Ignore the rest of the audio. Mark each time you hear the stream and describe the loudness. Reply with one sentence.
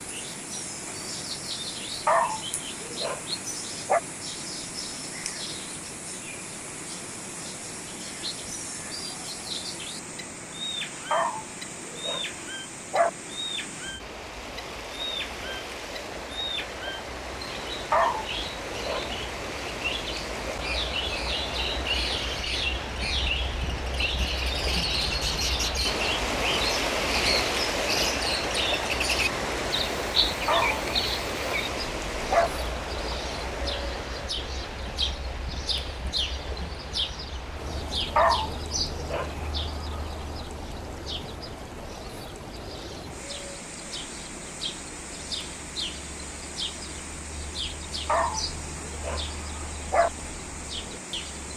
The stream can be heard from 0.0 to 51.5 s, getting louder then quieter.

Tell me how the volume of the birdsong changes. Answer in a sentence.
The loudness of the birdsong goes up, then down.